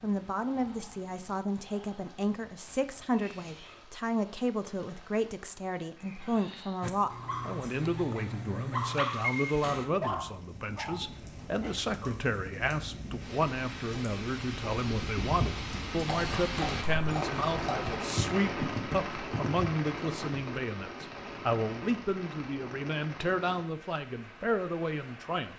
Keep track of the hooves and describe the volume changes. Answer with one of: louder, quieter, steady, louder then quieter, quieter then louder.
steady.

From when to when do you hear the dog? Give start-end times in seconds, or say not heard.
6.8-12.3.